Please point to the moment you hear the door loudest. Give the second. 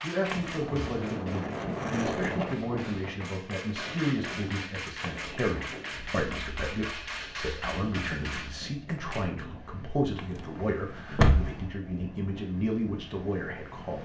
11 s.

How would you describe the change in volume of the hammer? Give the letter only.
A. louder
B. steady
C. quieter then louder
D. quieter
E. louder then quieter
A.